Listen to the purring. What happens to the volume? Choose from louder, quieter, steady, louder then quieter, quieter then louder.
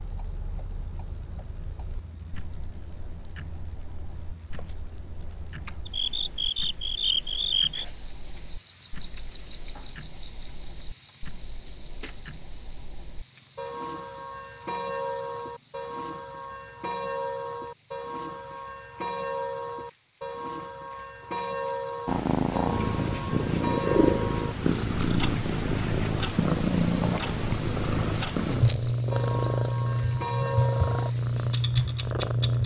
steady.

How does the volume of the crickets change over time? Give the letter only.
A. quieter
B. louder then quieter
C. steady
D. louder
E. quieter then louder
E.